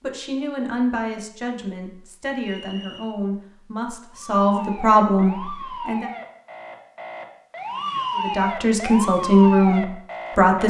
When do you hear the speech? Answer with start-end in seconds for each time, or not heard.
0.0-6.1, 8.2-10.6.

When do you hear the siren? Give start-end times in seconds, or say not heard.
4.0-10.6.